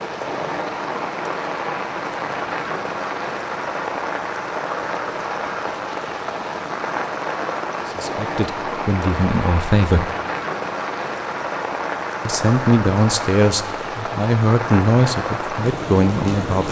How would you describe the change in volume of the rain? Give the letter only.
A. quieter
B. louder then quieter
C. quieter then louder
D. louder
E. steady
E.